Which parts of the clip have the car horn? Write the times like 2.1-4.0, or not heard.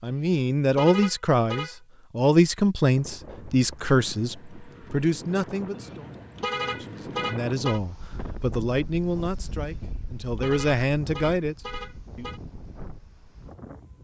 0.1-1.8, 5.8-7.8, 9.8-12.4.